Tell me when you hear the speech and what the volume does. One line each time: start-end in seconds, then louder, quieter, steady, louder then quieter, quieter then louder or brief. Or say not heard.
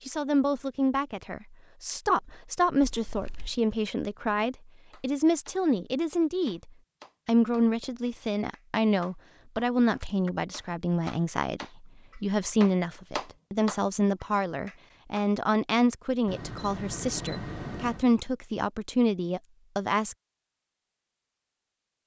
0.1-20.1 steady.